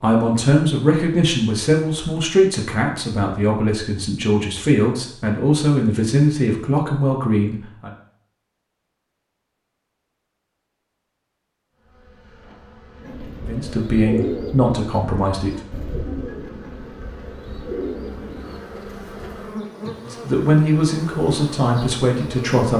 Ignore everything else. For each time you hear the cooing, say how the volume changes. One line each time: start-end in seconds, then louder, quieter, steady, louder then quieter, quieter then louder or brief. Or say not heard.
13.0-18.6 quieter then louder.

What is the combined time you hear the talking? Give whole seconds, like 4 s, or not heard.
13 s.